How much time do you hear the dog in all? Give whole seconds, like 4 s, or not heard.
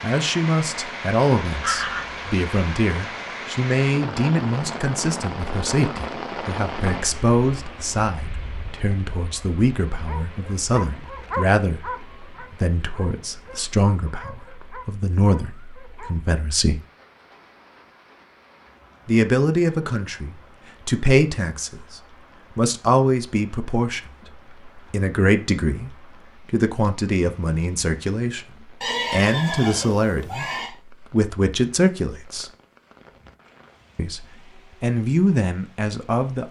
6 s.